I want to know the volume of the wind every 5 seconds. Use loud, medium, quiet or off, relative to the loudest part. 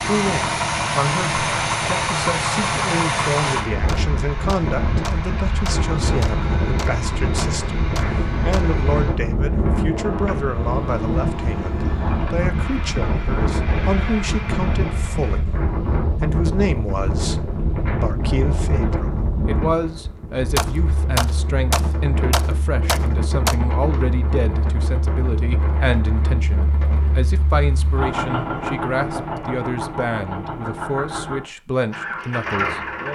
loud, loud, loud, loud, medium, medium, off.